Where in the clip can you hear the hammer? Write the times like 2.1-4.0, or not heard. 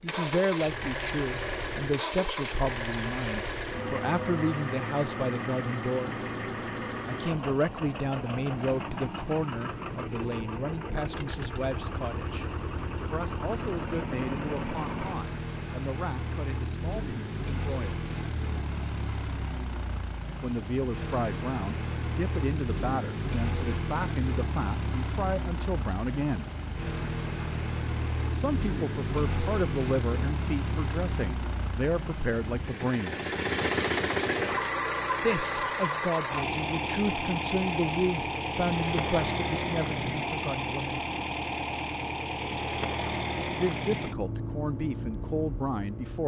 not heard.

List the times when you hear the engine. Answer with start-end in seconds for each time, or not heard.
0.0-46.2.